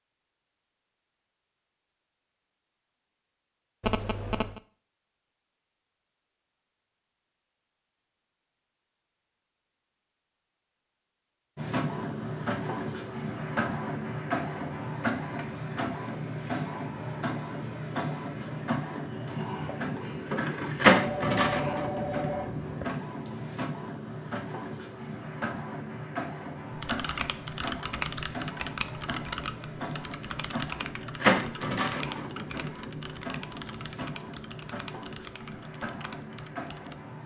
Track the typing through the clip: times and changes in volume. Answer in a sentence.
The typing can be heard from 26.8 to 37.0 s, getting quieter.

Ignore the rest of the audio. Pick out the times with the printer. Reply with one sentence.
You can hear the printer from 11.6 to 37.2 s.